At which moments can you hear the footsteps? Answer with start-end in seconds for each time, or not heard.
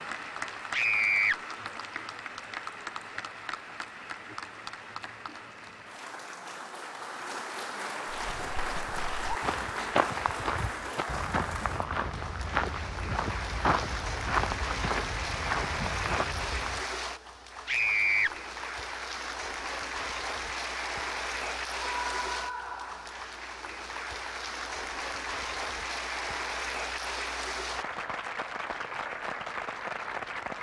8.1-16.9.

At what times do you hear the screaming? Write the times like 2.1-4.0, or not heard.
0.7-1.4, 17.6-18.3, 21.9-23.2.